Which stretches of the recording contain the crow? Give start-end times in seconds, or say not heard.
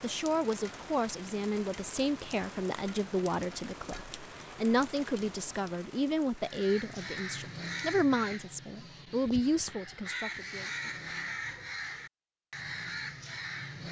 6.3-13.8.